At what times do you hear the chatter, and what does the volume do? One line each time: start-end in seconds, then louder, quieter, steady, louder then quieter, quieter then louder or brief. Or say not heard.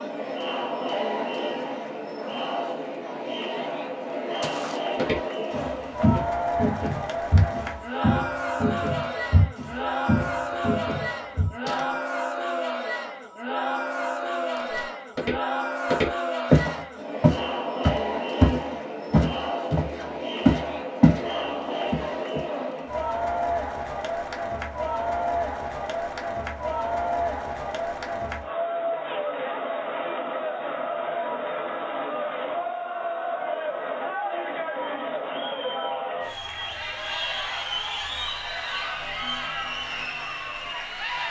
0.0-41.2 steady.